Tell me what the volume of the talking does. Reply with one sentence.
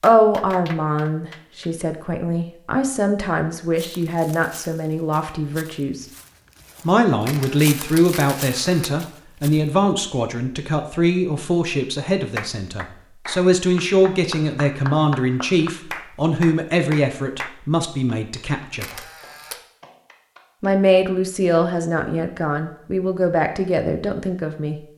The volume of the talking stays about the same.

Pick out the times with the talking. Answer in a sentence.
You can hear the talking from 0.0 to 6.0 s, from 6.8 to 18.9 s and from 20.6 to 24.8 s.